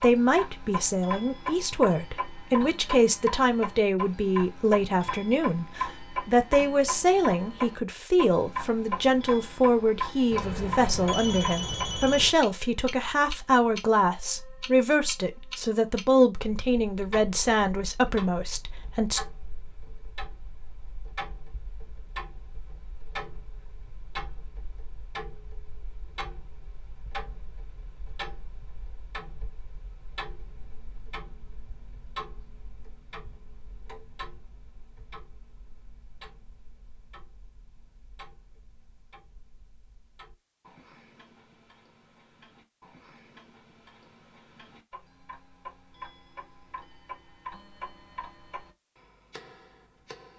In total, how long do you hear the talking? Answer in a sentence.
You can hear the talking for 19 seconds altogether.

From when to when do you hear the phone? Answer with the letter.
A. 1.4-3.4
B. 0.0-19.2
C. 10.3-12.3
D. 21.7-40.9
C.